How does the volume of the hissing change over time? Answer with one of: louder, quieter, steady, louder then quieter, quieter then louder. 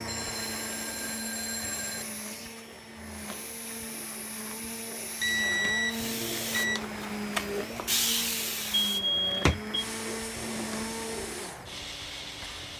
louder then quieter.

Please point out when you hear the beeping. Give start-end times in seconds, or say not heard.
0.1-2.0, 5.2-6.8, 8.7-9.8.